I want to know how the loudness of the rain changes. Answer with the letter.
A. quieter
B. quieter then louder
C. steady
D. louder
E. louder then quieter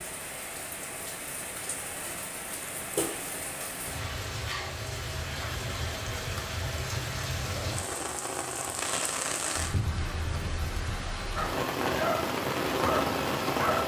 D.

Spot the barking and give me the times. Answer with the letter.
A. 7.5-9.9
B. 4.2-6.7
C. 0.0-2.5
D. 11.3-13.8
D.